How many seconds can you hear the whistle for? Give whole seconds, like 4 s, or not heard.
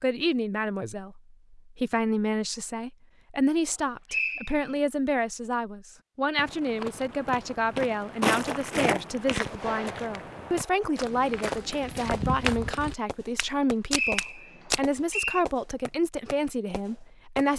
2 s.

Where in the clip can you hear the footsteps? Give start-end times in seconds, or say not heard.
6.3-14.8.